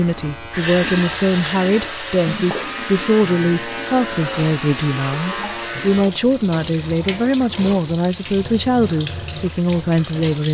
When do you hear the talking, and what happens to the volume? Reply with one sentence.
You can hear the talking from 0.0 to 10.4 s, at a steady volume.